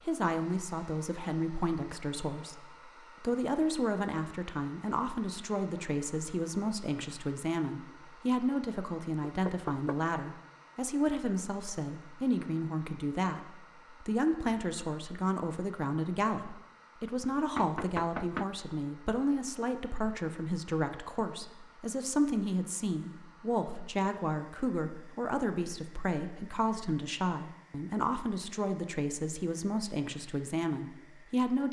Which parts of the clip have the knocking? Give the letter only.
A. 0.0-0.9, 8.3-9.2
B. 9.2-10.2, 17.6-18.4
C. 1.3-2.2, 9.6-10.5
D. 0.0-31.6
B.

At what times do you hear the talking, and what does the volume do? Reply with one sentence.
The talking can be heard from 0.0 to 31.6 s, at a steady volume.